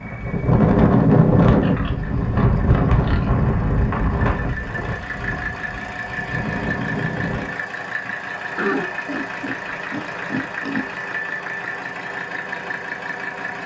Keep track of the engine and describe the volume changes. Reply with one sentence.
The volume of the engine goes up.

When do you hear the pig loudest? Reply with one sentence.
The volume of the pig peaks at 9 seconds.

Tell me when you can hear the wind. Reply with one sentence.
You can hear the wind from 0.0 to 7.6 s.